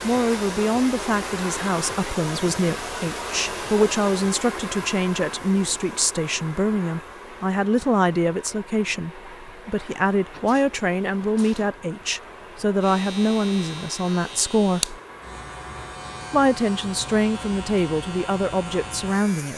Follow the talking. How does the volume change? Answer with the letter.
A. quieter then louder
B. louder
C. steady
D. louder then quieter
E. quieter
C.